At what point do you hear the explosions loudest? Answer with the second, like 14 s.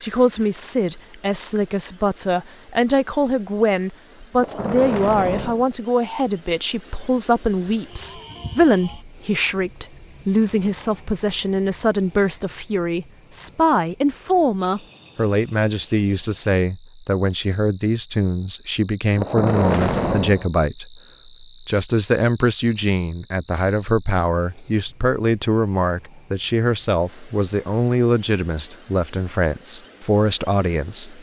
20 s.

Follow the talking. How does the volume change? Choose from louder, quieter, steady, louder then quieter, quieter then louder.
steady.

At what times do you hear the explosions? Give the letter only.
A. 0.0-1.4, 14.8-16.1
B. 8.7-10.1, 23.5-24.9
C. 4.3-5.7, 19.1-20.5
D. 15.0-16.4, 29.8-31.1
C.